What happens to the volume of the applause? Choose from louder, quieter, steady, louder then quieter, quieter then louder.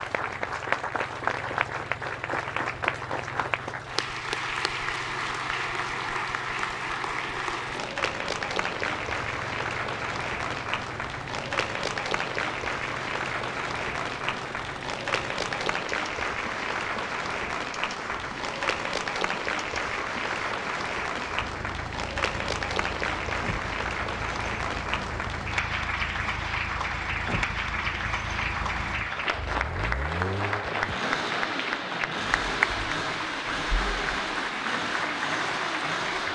steady.